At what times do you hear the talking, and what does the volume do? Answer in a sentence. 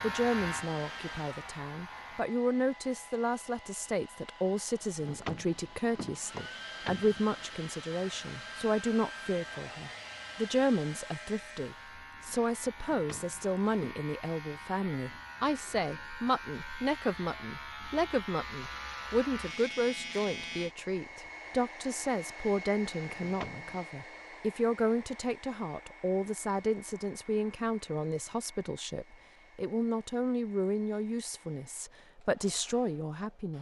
The talking can be heard from 0.0 to 33.5 s, at a steady volume.